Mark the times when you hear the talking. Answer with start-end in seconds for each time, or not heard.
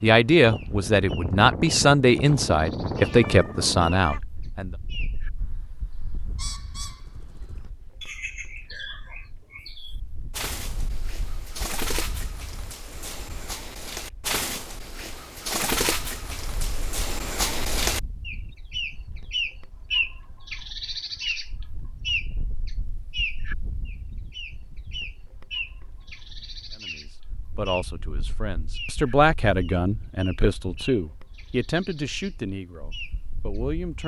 0.0-4.7, 26.8-34.0.